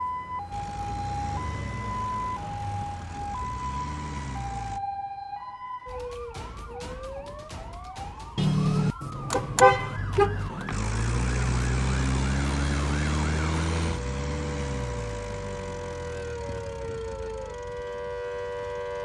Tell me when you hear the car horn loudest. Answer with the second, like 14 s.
10 s.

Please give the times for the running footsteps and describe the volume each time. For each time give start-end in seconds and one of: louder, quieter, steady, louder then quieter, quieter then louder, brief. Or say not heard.
not heard.